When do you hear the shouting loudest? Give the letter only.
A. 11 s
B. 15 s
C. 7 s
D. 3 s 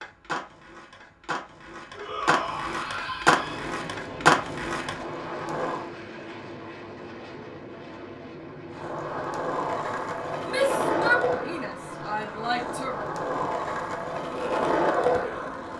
A.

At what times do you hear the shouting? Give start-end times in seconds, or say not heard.
1.9-3.7, 10.4-13.0.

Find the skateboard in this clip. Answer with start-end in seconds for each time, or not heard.
0.0-5.9, 8.8-15.7.